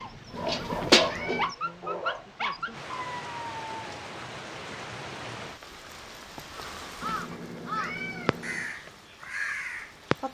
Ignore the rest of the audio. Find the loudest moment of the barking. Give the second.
1 s.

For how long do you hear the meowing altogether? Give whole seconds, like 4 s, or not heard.
3 s.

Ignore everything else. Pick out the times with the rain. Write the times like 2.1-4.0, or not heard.
0.0-10.2.